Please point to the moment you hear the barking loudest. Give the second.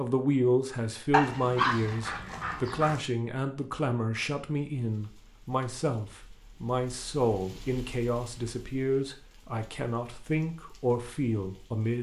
2 s.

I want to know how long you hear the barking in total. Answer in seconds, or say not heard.
2 s.